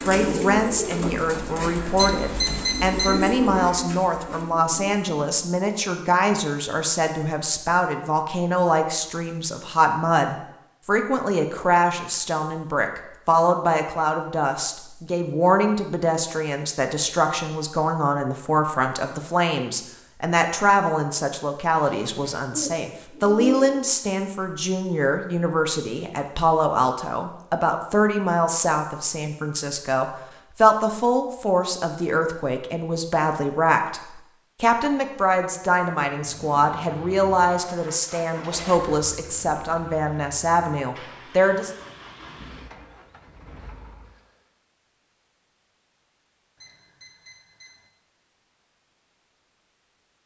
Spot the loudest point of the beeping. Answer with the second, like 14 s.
3 s.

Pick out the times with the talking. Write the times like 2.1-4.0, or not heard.
0.0-41.7.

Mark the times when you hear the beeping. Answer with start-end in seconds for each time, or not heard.
1.9-3.2, 46.6-47.9.